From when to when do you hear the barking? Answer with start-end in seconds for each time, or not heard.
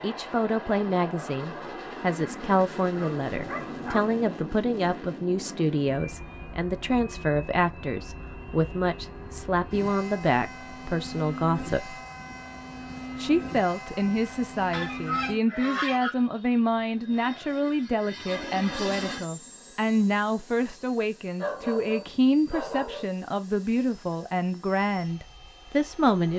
2.9-4.0, 21.4-23.1.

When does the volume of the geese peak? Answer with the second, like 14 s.
16 s.